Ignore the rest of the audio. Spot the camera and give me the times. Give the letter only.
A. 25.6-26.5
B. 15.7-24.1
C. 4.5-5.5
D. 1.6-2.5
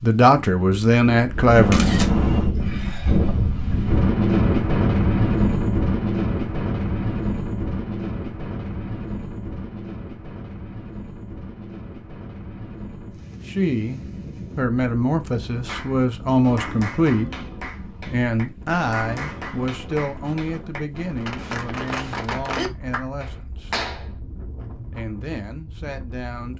D.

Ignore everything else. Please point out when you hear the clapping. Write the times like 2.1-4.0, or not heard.
15.7-24.1.